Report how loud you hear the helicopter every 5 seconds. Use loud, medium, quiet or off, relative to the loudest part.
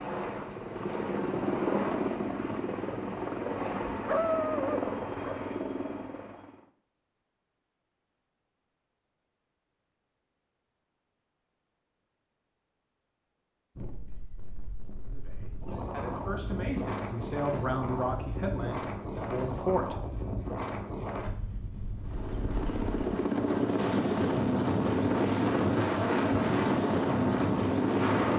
medium, medium, off, off, loud, loud.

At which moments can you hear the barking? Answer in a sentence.
The barking can be heard from 3.9 to 5.4 s.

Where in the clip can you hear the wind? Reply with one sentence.
You can hear the wind from 13.8 to 28.3 s.